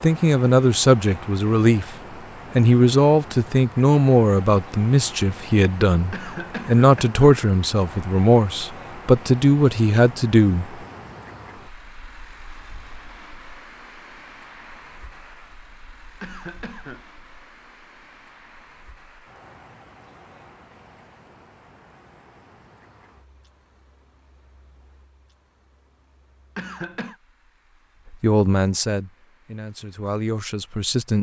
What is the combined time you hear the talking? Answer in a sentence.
The talking can be heard for 13 seconds in total.